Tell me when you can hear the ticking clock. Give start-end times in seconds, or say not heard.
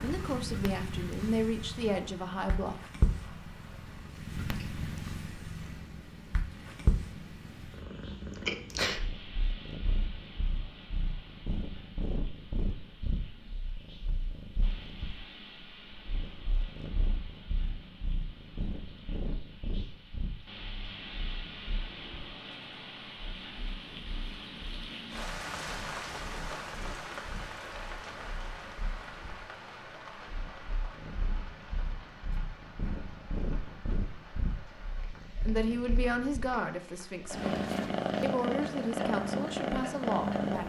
not heard.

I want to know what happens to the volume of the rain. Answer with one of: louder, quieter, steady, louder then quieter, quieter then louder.
louder then quieter.